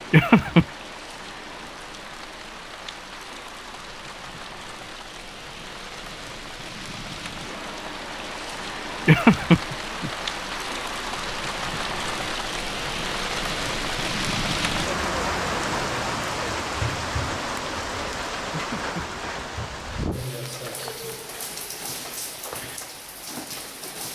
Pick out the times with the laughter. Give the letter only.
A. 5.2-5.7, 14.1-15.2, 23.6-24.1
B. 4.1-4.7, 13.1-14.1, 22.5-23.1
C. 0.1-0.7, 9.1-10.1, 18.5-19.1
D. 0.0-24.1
C.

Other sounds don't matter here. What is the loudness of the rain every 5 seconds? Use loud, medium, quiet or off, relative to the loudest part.
medium, medium, loud, loud, medium.